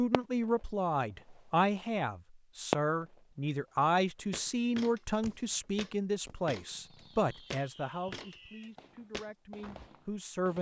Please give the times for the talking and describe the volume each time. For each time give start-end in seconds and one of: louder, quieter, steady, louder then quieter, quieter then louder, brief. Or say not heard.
0.0-10.5 quieter.